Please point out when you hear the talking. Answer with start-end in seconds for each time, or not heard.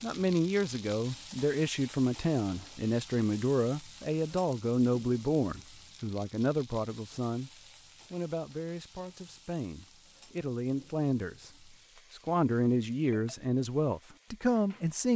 0.0-7.5, 8.1-11.5, 12.1-15.1.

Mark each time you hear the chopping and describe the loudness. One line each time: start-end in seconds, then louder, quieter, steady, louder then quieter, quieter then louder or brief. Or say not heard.
not heard.